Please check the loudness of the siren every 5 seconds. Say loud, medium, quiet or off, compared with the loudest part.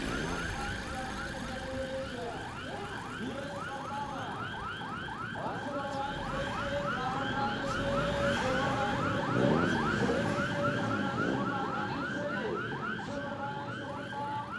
medium, loud, loud.